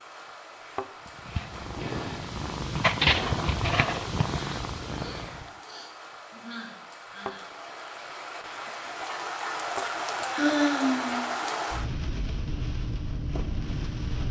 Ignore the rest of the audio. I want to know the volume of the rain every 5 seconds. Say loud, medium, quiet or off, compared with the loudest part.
quiet, medium, loud.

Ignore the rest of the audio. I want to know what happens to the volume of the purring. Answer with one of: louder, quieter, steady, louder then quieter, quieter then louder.
louder then quieter.